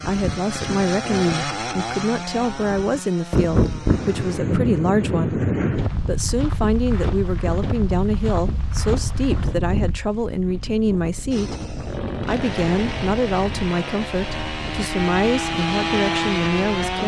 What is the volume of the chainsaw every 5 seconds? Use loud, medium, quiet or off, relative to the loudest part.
medium, off, medium, loud.